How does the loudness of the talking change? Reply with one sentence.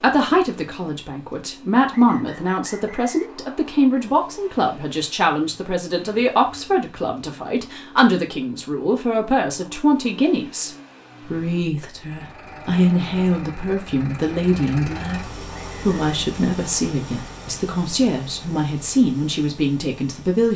The loudness of the talking stays about the same.